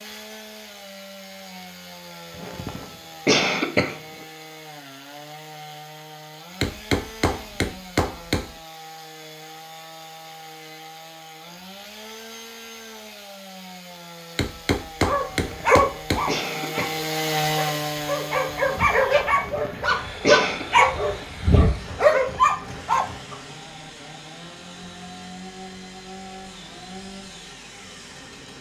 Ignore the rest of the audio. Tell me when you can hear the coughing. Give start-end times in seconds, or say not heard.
2.4-4.0, 15.4-16.9, 19.3-20.6.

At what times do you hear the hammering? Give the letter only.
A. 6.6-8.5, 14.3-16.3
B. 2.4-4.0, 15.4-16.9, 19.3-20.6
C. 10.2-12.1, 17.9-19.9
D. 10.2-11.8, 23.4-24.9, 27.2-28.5
A.